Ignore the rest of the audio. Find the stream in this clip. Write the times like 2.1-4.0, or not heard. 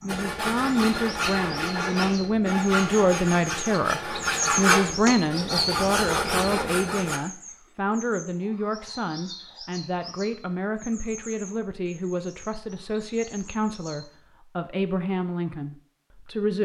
not heard.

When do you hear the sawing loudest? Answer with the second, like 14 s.
5 s.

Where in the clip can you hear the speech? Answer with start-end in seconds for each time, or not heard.
0.0-16.5.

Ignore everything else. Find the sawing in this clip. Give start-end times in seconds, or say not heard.
0.1-7.2.